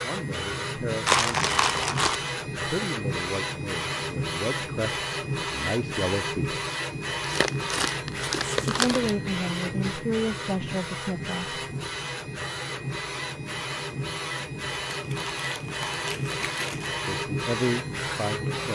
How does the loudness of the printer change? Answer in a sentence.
The volume of the printer stays about the same.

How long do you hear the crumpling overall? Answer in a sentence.
The crumpling can be heard for 5 seconds in total.